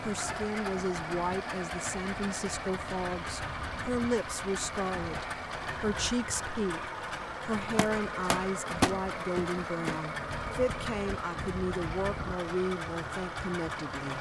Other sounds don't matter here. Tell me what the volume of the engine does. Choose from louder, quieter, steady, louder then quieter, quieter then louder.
steady.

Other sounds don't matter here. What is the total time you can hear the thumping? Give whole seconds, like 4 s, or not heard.
2 s.